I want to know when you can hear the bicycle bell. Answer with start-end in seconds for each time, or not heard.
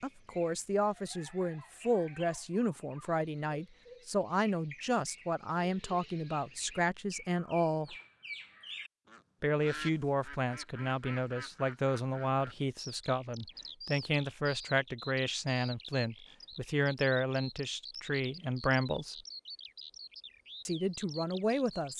not heard.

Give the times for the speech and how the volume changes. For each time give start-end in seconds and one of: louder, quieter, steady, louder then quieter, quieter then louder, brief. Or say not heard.
0.0-8.0 steady
9.4-19.1 steady
20.6-21.9 brief.